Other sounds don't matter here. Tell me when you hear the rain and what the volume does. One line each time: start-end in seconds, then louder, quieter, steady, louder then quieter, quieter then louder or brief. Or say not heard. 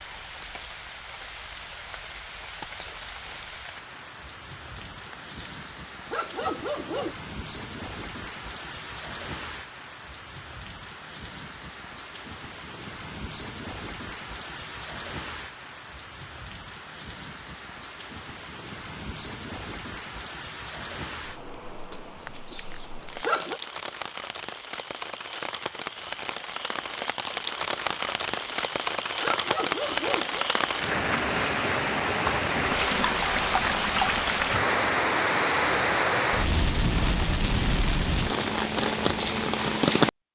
0.0-40.3 louder.